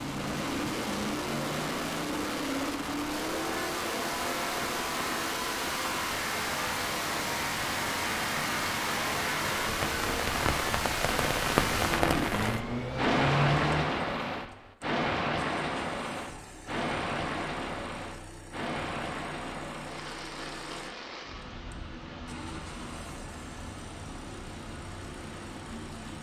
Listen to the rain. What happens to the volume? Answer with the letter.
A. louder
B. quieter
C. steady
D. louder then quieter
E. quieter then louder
D.